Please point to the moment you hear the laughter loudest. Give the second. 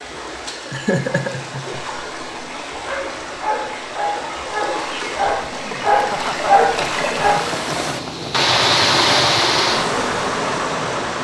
1 s.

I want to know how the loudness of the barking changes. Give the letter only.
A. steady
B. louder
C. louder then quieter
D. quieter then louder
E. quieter
B.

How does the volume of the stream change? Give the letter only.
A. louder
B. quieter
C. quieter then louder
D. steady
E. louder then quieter
A.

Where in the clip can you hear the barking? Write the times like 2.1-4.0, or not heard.
1.9-7.4.